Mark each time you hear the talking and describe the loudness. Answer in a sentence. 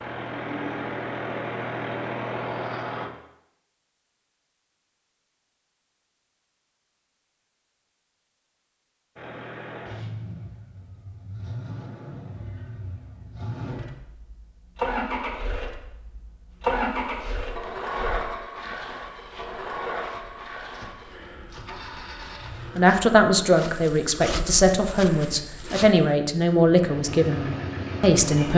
You can hear the talking from 22.8 to 28.5 s, at a steady volume.